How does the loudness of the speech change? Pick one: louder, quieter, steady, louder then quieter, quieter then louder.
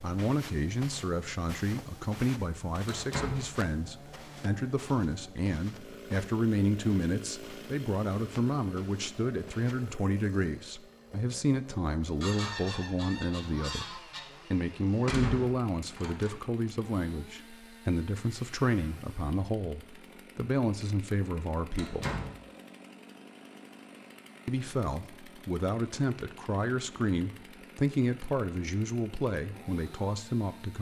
steady.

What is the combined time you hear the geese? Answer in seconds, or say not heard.
2 s.